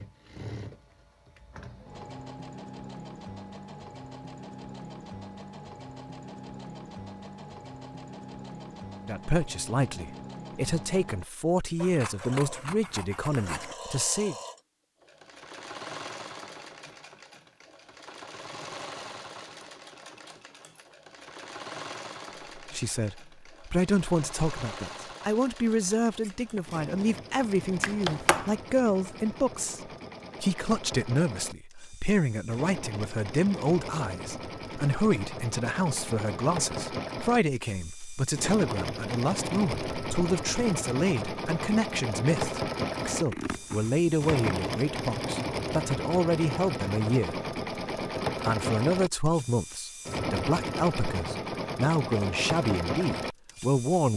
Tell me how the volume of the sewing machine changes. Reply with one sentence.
The loudness of the sewing machine goes up.